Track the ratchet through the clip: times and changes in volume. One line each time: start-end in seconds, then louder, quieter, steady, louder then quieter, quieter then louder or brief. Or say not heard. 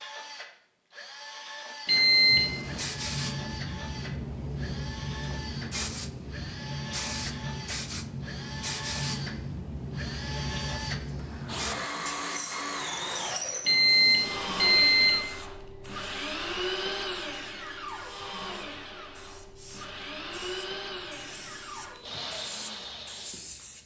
not heard.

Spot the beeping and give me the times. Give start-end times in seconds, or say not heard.
1.9-2.8, 13.7-15.2.